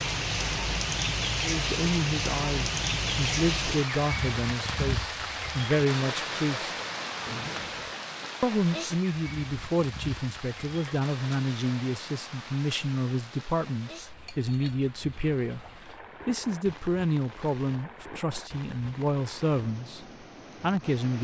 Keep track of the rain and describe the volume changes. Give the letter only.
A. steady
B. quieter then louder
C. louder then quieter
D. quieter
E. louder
D.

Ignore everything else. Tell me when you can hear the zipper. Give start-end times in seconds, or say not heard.
7.2-8.0.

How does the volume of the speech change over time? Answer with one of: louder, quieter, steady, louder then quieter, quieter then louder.
steady.